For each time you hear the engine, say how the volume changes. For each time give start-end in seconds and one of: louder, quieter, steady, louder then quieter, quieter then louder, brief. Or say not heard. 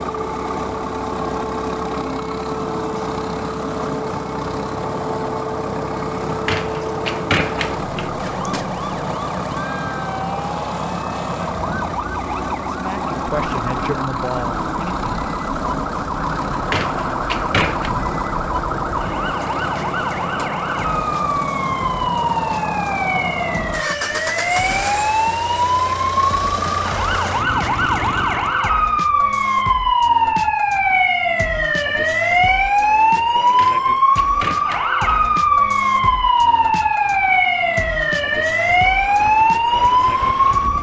0.0-28.7 steady
36.0-40.7 louder.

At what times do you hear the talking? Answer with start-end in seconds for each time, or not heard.
12.7-15.1.